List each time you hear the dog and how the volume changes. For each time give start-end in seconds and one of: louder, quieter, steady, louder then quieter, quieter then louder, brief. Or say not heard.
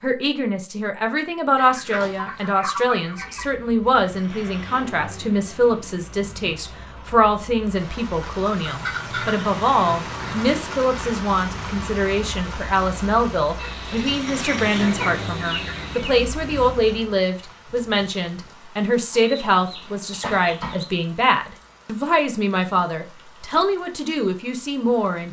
not heard.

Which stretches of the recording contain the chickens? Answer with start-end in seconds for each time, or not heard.
1.6-3.5, 8.7-10.7, 13.6-16.1, 19.1-20.9.